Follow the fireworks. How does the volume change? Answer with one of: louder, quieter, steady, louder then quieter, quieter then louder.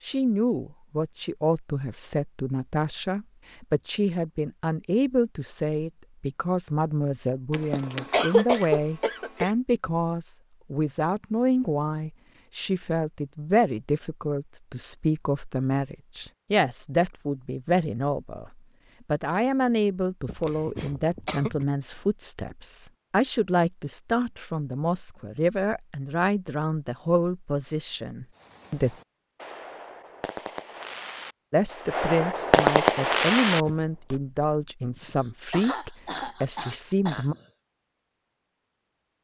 louder.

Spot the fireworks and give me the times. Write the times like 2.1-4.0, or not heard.
28.4-34.1.